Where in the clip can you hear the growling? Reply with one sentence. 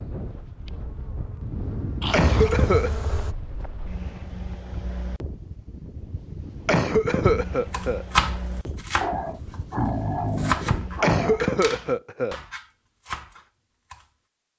You can hear the growling from 2.0 to 2.5 s and from 9.0 to 11.4 s.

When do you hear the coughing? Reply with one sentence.
You can hear the coughing from 2.1 to 2.9 s, from 6.7 to 8.1 s and from 11.0 to 12.3 s.